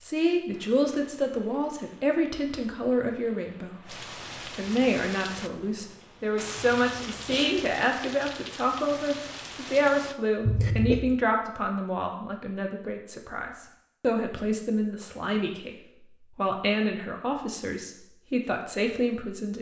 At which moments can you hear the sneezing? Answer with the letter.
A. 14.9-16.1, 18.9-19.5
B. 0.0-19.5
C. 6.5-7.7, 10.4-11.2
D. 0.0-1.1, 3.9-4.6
C.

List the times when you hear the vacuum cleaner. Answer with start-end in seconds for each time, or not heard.
not heard.